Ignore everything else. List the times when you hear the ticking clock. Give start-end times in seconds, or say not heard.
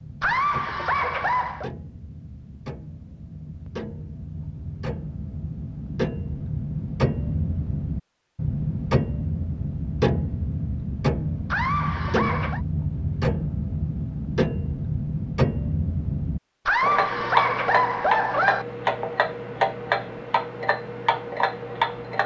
0.0-22.2.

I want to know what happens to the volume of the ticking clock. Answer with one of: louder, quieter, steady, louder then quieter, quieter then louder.
louder.